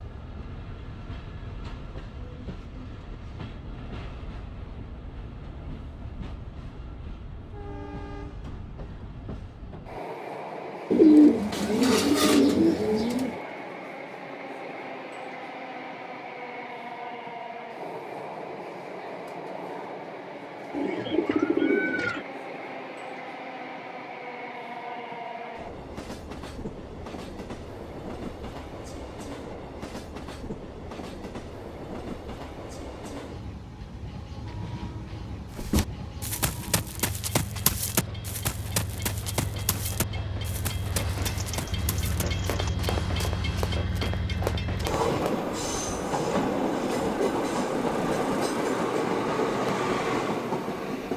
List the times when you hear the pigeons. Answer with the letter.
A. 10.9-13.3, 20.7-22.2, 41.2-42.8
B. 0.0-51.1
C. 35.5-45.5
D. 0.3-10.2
A.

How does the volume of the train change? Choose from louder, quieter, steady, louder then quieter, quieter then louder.
louder.